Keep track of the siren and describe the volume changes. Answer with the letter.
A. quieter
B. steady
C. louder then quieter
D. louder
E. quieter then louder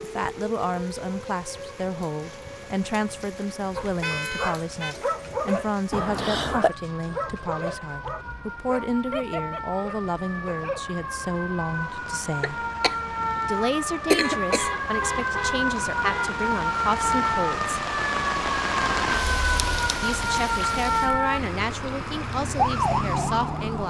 D.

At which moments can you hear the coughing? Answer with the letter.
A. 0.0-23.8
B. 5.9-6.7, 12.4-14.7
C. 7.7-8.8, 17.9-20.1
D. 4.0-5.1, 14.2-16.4
B.